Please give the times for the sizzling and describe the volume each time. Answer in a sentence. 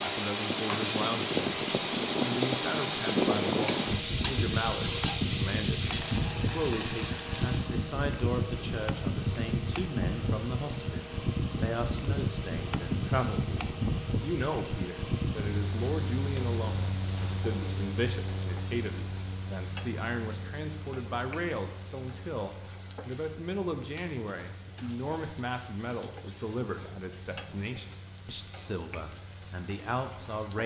The sizzling can be heard from 0.0 to 30.6 s, getting quieter.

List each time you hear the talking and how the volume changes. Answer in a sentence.
You can hear the talking briefly from 0.0 to 1.6 s; and from 2.2 to 30.6 s, at a steady volume.